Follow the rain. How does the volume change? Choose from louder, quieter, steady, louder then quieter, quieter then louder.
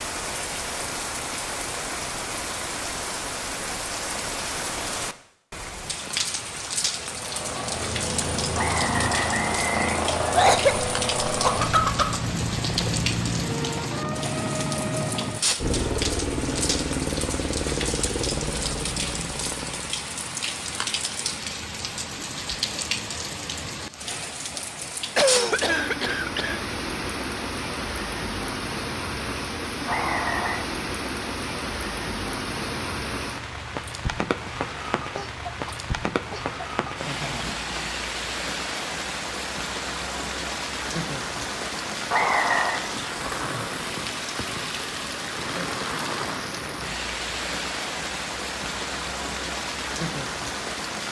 steady.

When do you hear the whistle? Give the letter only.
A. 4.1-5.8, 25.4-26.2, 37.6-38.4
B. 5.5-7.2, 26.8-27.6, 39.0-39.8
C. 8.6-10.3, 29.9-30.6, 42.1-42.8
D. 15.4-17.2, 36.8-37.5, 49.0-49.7
C.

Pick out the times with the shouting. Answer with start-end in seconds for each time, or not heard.
not heard.